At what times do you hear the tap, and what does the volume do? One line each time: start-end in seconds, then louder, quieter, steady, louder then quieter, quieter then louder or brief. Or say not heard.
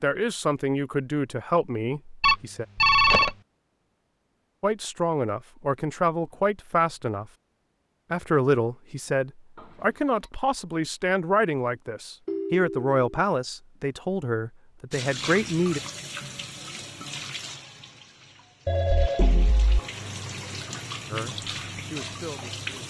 14.9-22.8 quieter then louder.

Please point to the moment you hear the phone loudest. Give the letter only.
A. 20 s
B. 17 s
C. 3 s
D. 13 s
C.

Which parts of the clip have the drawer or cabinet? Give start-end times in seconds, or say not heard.
not heard.